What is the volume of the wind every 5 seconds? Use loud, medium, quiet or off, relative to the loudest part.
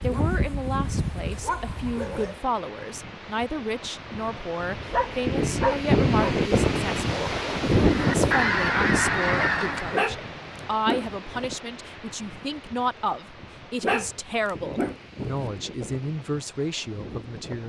quiet, loud, quiet, quiet.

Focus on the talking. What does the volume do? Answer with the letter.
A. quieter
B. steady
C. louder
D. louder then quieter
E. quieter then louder
B.